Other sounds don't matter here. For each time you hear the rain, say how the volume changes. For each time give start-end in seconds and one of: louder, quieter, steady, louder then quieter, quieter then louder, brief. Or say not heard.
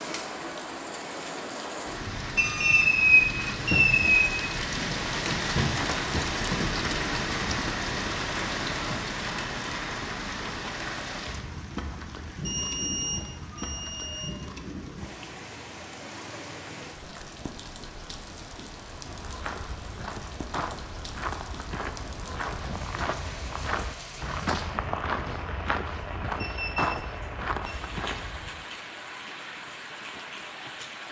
0.0-31.0 quieter.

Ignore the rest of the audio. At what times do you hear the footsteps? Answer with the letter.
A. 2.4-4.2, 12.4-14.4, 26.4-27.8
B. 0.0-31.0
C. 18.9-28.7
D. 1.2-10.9
C.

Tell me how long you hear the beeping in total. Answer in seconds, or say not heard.
5 s.